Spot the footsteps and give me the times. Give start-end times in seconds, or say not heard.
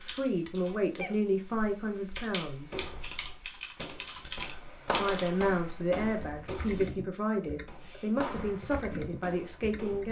2.6-10.0.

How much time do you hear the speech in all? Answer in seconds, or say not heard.
8 s.